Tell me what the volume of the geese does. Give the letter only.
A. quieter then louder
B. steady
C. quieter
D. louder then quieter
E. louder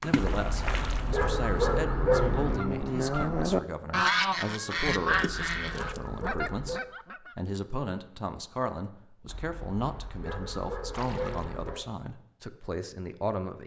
D.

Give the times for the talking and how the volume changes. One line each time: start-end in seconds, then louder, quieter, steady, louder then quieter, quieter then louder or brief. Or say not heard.
0.0-13.6 steady.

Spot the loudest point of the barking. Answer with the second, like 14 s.
2 s.